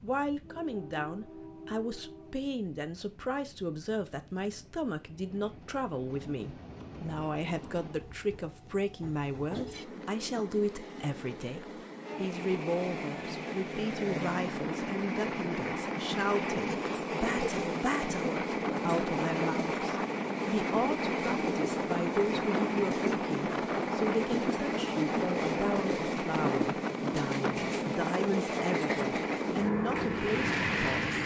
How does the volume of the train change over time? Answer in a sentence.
The volume of the train goes up.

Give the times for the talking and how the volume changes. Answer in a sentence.
You can hear the talking from 0.0 to 31.2 s, at a steady volume.